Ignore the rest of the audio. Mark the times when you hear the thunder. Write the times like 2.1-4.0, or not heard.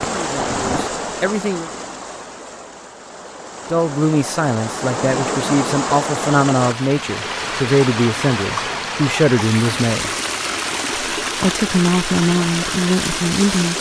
0.3-0.9.